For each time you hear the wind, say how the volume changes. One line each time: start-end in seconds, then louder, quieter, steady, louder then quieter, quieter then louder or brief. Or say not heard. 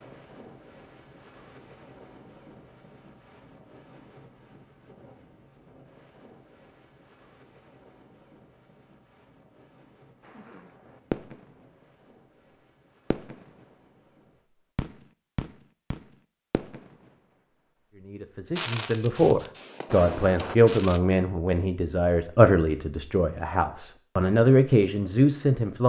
0.0-14.4 quieter.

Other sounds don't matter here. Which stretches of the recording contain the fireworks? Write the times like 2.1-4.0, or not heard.
10.2-11.7, 13.1-13.5, 14.8-16.9, 18.6-21.0.